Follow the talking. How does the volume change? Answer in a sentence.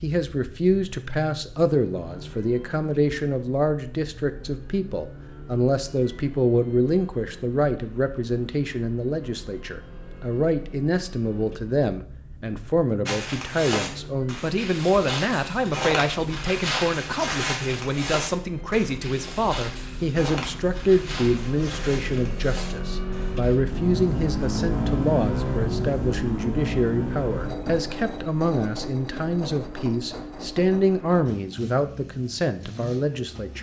The volume of the talking stays about the same.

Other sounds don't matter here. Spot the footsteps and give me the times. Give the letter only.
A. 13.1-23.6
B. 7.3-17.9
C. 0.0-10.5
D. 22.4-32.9
A.